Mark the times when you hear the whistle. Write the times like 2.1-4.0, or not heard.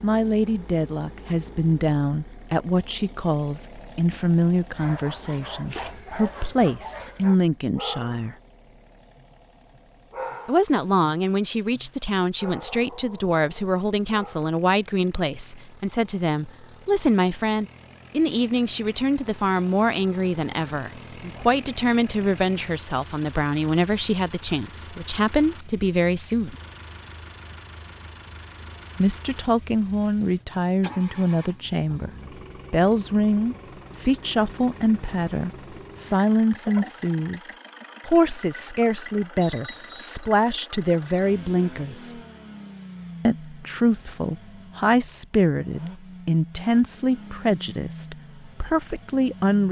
39.4-40.1.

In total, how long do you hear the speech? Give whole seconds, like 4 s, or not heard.
43 s.